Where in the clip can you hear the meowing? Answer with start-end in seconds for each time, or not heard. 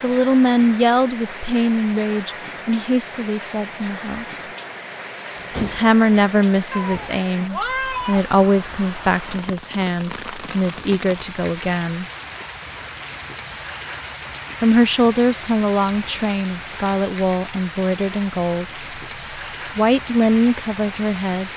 6.7-8.2.